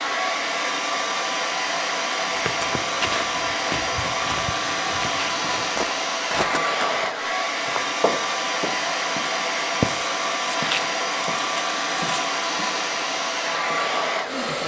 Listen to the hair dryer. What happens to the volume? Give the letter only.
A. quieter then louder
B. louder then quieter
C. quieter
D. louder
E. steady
E.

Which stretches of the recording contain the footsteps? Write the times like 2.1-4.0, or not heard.
2.2-7.0, 7.7-12.7.